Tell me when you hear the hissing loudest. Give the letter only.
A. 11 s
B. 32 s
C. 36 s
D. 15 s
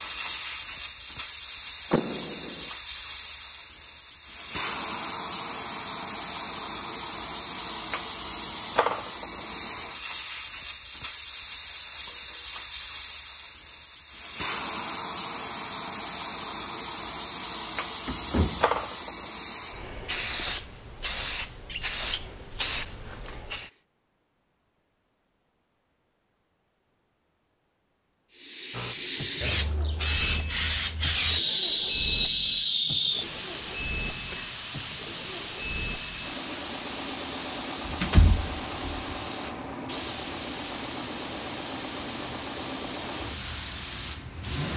B.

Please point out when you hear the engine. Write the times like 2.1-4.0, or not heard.
28.7-44.7.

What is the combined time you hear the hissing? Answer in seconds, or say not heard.
40 s.